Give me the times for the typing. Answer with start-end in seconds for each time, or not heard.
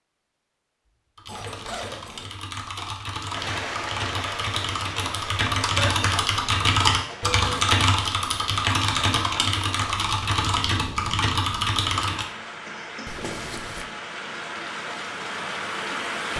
1.1-12.2.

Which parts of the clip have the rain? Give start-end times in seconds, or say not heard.
3.2-16.3.